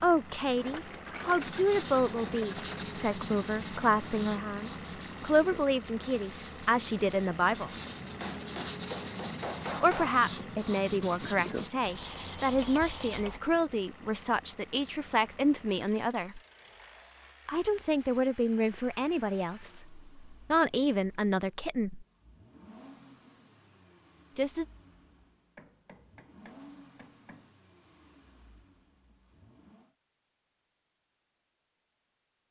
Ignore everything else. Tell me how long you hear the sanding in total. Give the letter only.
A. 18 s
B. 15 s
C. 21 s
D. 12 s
D.